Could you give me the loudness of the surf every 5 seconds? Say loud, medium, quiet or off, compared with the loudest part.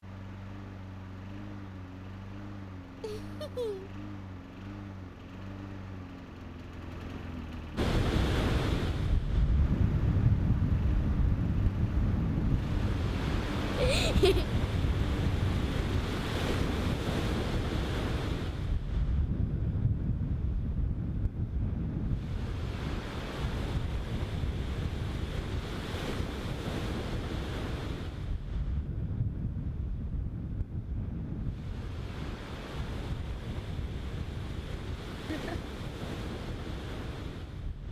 off, loud, loud, loud, medium, medium, medium, medium.